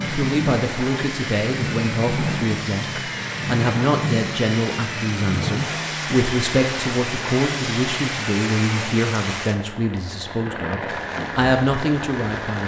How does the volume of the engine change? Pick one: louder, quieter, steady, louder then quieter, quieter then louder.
steady.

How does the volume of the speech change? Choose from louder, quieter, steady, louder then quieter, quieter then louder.
steady.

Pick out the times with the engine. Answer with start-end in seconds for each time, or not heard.
0.0-8.9.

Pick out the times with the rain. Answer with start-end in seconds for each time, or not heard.
0.0-12.6.